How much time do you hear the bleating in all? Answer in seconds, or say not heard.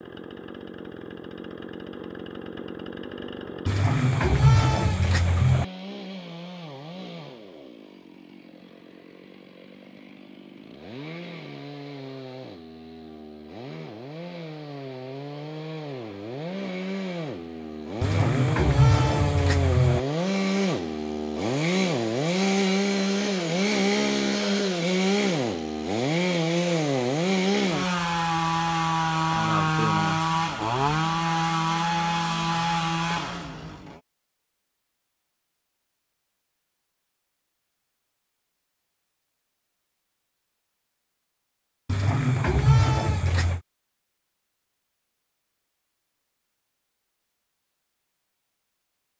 6 s.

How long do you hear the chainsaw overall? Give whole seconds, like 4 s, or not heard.
34 s.